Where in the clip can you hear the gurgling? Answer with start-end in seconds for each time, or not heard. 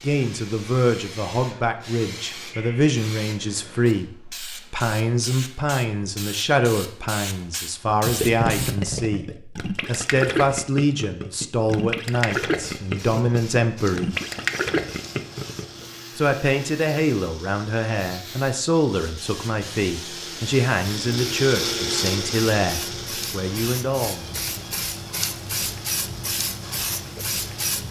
8.1-15.8.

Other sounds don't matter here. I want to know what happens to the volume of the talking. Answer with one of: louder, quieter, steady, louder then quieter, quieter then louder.
steady.